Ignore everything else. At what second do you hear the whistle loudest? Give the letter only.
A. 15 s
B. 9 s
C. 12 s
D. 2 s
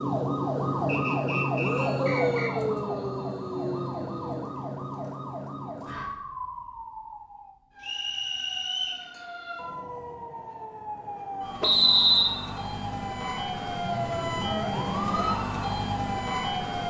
C.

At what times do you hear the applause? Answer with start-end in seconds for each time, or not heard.
not heard.